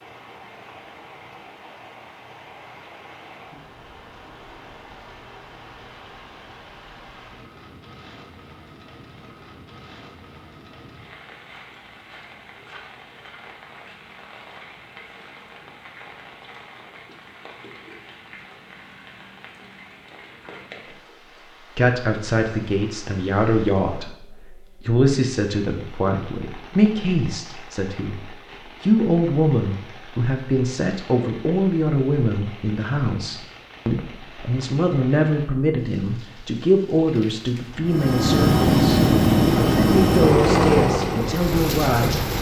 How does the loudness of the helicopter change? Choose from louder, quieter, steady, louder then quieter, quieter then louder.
quieter.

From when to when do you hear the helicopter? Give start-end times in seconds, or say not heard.
37.9-42.3.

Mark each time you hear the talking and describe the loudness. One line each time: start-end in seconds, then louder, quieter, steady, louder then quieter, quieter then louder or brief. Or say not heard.
21.8-42.3 steady.